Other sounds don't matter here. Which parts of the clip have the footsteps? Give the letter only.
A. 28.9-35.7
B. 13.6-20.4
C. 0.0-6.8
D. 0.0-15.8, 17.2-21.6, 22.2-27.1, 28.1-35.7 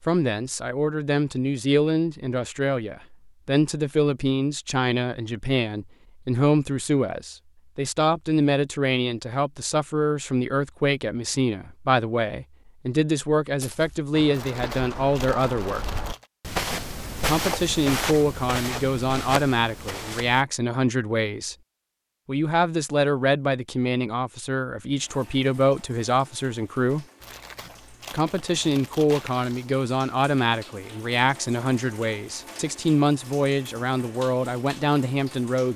B.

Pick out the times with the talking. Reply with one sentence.
You can hear the talking from 0.0 to 15.8 s, from 17.2 to 21.6 s, from 22.2 to 27.1 s and from 28.1 to 35.7 s.